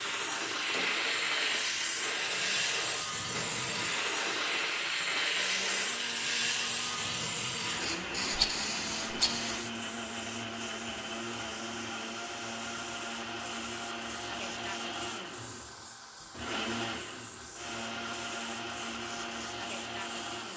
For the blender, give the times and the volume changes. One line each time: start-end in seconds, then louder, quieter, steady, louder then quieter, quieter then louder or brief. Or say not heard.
0.0-20.5 steady.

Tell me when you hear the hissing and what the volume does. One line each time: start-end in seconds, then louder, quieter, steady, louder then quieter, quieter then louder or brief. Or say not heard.
0.0-20.5 quieter.